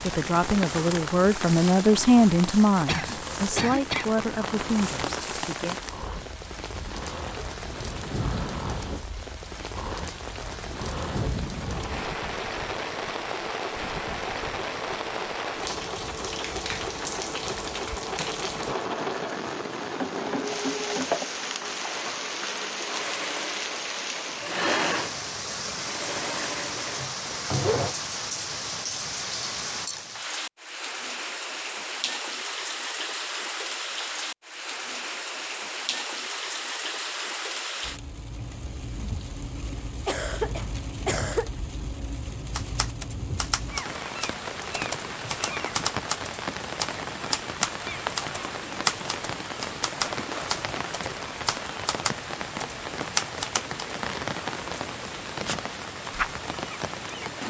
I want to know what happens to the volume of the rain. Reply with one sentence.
The volume of the rain stays about the same.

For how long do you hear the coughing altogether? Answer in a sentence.
You can hear the coughing for 3 seconds altogether.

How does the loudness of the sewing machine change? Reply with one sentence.
The volume of the sewing machine goes up.